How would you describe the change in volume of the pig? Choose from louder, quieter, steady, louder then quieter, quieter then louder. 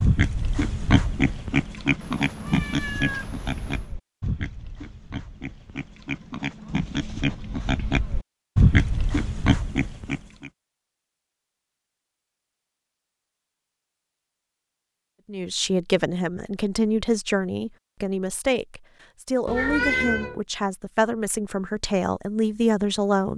quieter then louder.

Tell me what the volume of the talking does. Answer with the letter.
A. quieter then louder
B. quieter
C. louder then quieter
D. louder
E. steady
E.